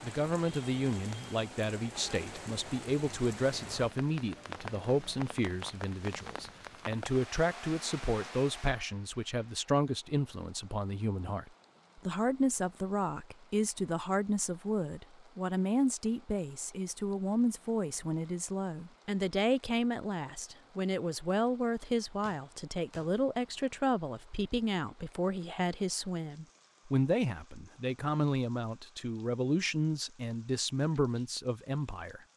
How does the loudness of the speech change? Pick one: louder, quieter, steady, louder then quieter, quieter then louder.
steady.